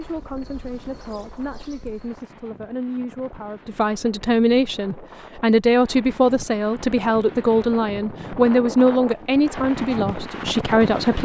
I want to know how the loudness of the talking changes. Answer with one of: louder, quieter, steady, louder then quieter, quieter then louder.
louder.